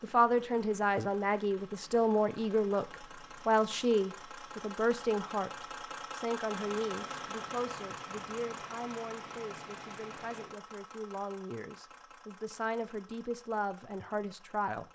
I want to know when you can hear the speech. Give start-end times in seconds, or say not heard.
0.0-14.8.